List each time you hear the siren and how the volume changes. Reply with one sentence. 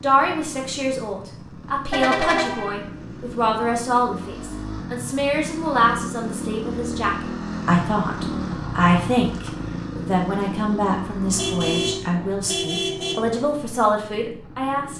The siren can't be heard in this clip.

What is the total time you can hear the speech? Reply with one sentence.
You can hear the speech for 15 seconds altogether.